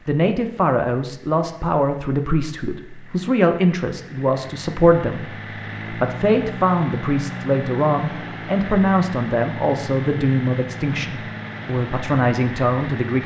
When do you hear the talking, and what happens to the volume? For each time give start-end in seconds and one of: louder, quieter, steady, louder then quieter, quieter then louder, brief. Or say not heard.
0.1-13.2 steady.